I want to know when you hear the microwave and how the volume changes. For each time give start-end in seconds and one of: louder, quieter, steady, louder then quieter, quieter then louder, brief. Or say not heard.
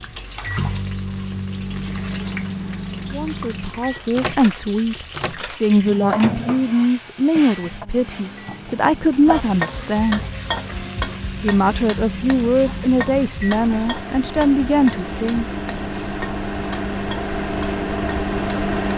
0.0-18.9 quieter then louder.